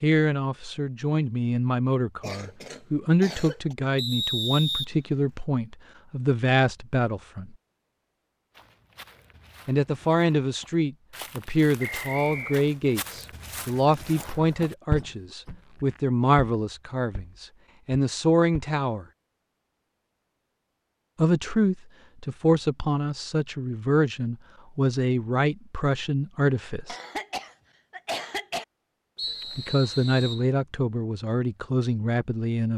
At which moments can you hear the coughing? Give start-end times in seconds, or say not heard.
2.2-3.8, 14.9-15.6, 26.9-28.6.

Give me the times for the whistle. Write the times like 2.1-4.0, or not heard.
4.0-5.4, 11.8-12.6, 29.1-30.4.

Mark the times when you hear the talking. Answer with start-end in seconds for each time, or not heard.
0.0-7.5, 9.7-19.1, 21.1-26.9, 29.6-32.7.